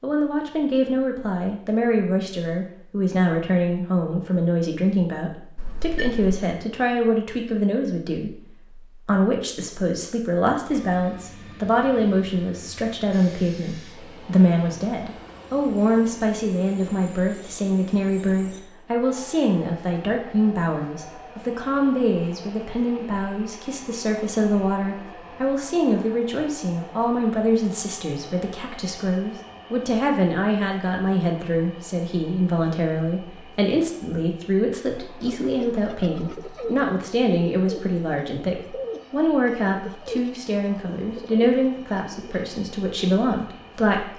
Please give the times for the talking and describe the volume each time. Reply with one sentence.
You can hear the talking from 0.0 to 44.1 s, at a steady volume.